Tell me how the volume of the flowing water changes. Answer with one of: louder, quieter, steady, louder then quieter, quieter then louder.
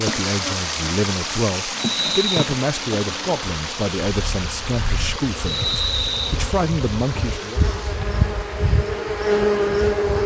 quieter.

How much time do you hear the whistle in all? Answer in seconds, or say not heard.
2 s.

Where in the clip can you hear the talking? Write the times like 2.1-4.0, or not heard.
0.0-7.6.